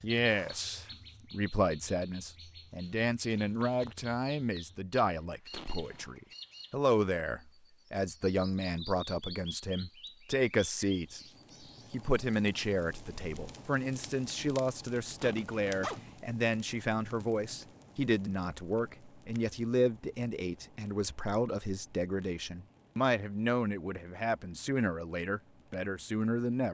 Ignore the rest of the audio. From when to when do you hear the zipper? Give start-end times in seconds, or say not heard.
5.5-6.2, 15.2-16.0.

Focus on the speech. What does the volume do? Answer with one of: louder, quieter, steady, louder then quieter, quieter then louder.
steady.